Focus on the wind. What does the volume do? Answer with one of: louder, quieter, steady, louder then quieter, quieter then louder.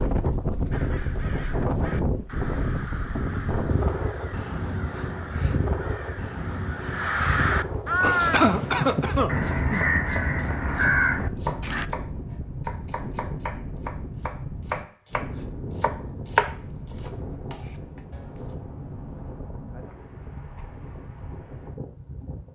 quieter.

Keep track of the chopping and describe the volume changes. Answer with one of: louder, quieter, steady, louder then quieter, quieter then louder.
louder.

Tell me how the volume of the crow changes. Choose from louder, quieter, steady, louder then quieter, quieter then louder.
louder.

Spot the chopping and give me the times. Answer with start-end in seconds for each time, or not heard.
7.7-18.6.